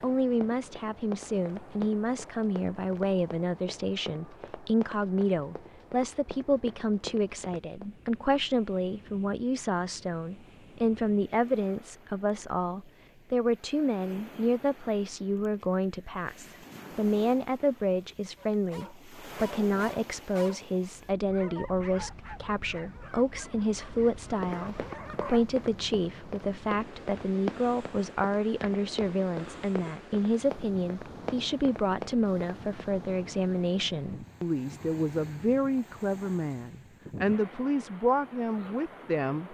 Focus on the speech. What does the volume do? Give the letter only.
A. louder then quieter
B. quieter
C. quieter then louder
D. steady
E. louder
D.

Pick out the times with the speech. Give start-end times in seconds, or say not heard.
0.0-39.4.